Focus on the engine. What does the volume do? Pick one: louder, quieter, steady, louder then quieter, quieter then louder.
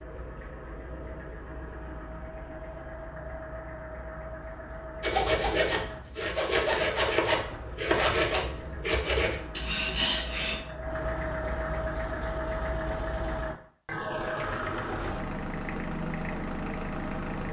louder.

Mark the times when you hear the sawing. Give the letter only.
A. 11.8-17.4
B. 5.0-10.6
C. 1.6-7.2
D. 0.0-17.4
B.